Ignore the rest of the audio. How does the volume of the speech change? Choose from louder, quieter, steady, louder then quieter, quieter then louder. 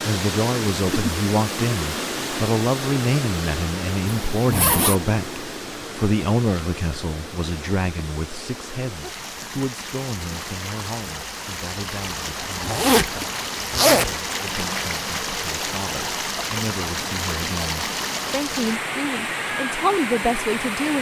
quieter then louder.